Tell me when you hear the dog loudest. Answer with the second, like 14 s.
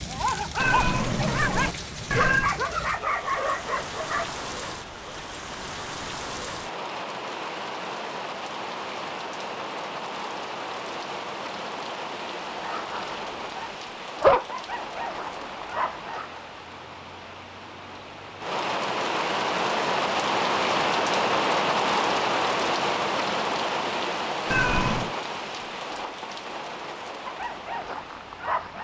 14 s.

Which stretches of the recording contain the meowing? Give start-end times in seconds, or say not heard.
0.6-2.5, 24.4-25.1.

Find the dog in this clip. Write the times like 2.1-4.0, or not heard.
0.0-4.5, 12.5-16.4, 27.2-28.8.